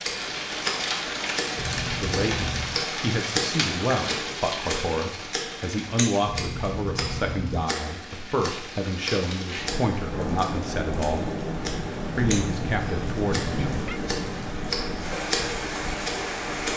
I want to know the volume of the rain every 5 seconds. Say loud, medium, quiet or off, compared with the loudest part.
loud, medium, loud, loud.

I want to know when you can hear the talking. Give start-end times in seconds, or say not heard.
1.9-11.3, 12.2-13.7.